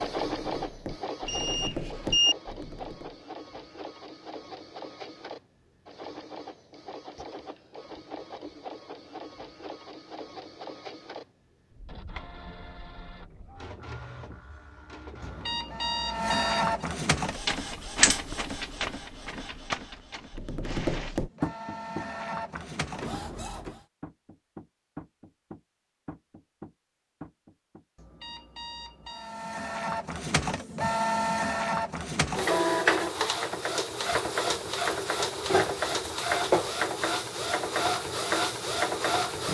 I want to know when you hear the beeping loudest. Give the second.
2 s.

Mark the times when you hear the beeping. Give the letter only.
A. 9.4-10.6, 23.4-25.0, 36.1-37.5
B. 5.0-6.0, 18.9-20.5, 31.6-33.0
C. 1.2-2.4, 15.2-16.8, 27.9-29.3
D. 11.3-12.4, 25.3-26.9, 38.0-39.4
C.